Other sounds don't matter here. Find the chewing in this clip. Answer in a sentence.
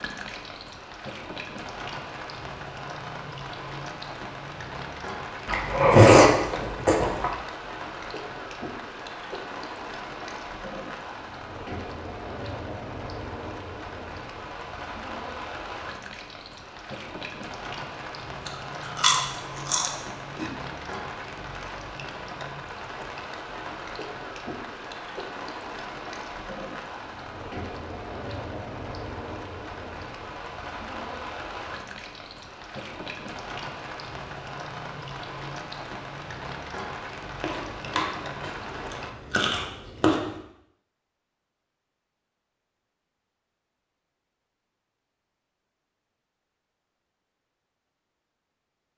You can hear the chewing from 5.5 to 7.3 s, from 18.4 to 20.4 s and from 37.4 to 40.3 s.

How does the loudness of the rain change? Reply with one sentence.
The loudness of the rain stays about the same.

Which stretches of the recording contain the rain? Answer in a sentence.
You can hear the rain from 0.0 to 39.1 s.